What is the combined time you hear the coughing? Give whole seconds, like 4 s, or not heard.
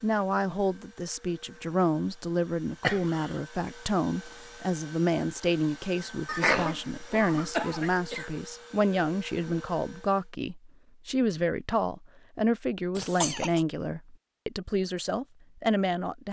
3 s.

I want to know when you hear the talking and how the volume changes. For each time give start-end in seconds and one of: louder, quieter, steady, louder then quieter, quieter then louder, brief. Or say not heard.
0.0-16.2 steady.